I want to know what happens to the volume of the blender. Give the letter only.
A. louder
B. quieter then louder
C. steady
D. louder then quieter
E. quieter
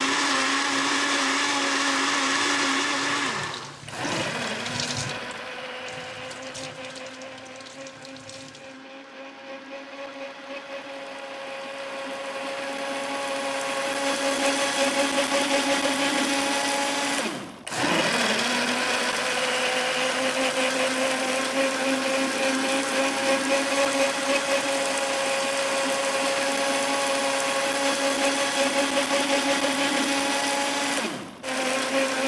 B.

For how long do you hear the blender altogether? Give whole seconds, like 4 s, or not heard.
32 s.